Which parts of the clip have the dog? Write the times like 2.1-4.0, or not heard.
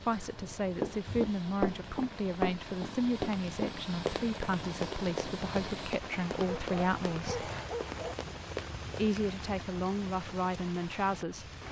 0.1-1.4, 6.5-8.2.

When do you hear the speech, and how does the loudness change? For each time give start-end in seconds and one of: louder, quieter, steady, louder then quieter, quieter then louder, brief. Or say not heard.
0.0-7.5 steady
8.9-11.5 brief.